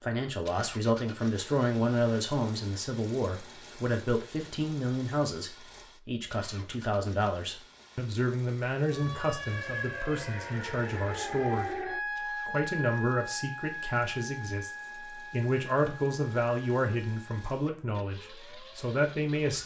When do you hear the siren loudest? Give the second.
12 s.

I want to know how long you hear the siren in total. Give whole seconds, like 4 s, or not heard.
11 s.